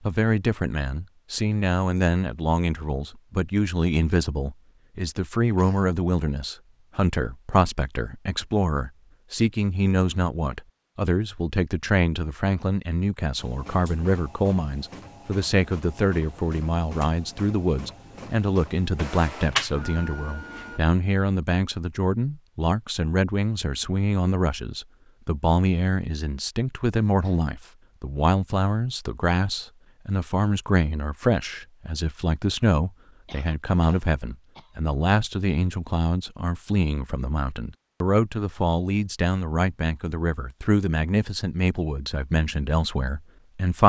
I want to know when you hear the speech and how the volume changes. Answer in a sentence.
The speech can be heard from 0.0 to 43.8 s, at a steady volume.